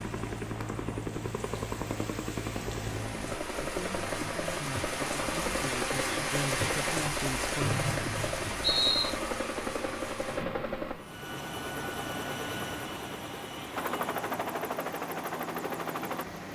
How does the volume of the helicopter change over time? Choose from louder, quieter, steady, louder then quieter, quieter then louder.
steady.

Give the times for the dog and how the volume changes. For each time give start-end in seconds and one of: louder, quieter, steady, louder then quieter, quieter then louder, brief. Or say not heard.
not heard.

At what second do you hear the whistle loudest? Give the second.
9 s.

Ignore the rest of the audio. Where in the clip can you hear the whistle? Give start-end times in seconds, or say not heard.
7.6-9.2.